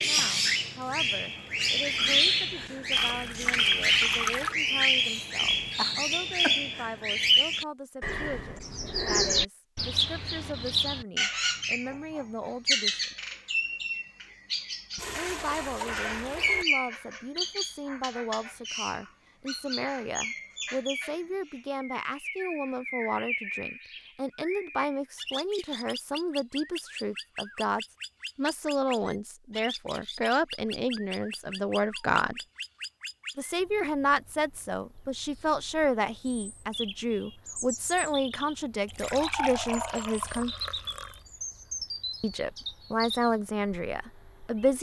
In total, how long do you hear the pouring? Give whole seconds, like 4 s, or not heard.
6 s.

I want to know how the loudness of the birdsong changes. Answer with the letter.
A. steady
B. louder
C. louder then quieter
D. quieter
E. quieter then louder
D.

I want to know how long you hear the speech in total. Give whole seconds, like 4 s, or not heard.
40 s.